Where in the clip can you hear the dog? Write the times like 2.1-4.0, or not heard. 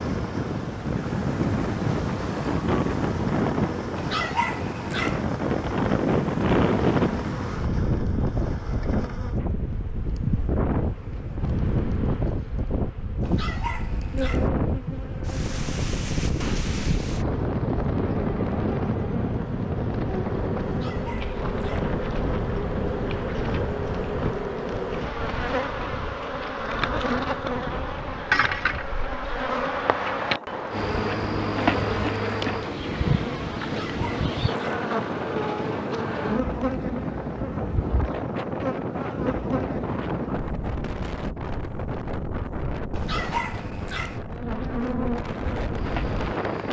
4.0-5.2, 13.2-14.5, 20.6-21.9, 33.6-34.9, 42.9-44.2.